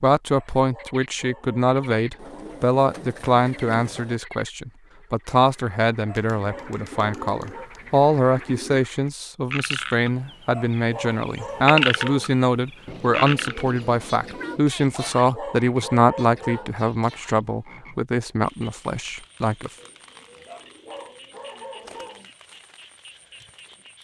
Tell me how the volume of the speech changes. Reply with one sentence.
The volume of the speech stays about the same.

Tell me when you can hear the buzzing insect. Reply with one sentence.
The buzzing insect can't be heard in this clip.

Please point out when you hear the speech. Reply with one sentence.
The speech can be heard from 0.0 to 19.7 s.